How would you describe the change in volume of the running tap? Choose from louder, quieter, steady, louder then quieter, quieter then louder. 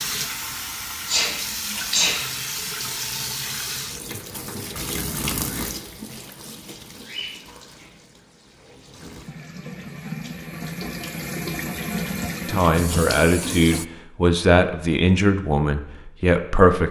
quieter then louder.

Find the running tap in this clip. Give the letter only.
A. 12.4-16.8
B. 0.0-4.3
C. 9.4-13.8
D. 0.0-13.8
D.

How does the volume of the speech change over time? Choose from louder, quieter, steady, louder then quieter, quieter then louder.
steady.